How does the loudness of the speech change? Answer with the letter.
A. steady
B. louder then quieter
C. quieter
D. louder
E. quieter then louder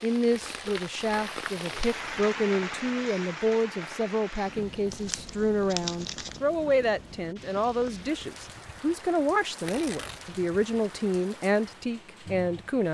A.